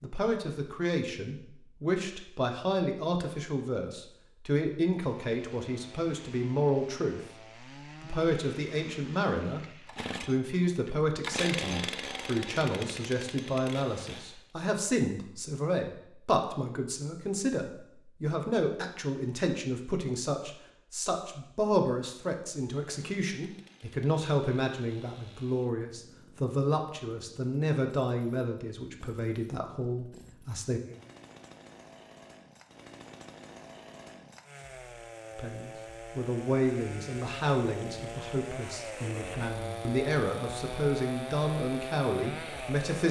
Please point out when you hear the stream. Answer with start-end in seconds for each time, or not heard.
not heard.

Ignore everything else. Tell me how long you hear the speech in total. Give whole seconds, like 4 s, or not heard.
37 s.